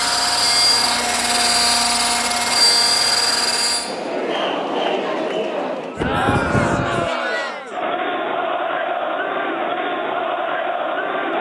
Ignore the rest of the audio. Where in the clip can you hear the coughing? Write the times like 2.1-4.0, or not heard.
not heard.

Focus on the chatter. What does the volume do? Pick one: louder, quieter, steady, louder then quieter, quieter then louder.
louder.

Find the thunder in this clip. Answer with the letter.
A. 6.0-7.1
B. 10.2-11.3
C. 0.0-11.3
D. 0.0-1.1
A.